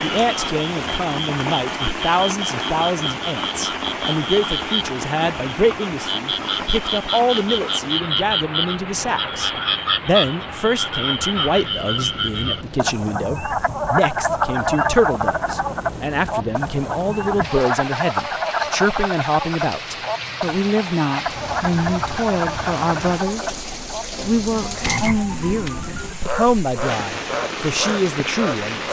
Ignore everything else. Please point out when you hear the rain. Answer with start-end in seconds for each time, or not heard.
0.0-28.8.